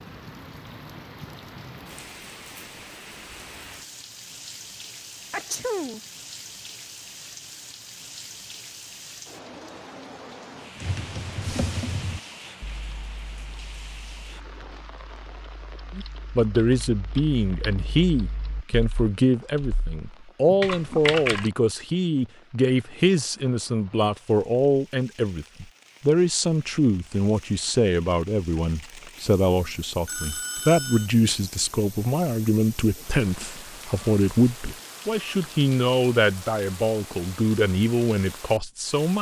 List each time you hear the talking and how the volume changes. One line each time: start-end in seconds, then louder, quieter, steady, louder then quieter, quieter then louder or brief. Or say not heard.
15.9-39.1 steady.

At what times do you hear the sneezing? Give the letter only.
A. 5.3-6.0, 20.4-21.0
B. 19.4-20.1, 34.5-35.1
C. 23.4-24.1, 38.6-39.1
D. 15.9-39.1
A.